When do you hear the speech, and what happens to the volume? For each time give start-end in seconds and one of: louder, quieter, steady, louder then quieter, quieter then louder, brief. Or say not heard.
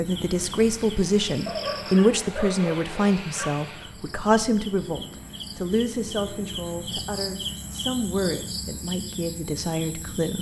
0.0-10.3 quieter.